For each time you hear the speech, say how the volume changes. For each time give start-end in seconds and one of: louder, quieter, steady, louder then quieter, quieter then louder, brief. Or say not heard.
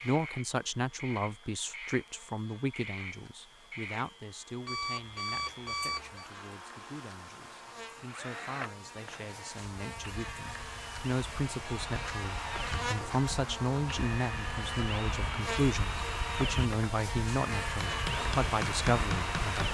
0.0-19.6 quieter then louder.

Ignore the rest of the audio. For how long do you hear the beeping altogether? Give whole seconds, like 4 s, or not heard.
2 s.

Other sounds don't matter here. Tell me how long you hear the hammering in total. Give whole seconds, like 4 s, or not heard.
2 s.